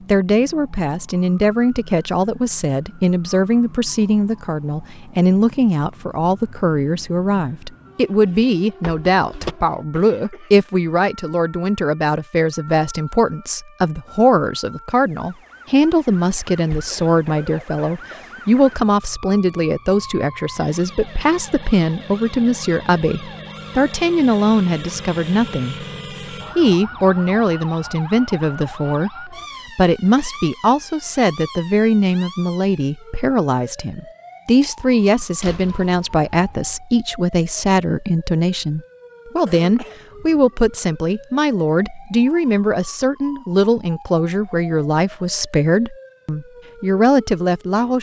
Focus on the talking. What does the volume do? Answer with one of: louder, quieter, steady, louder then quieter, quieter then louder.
steady.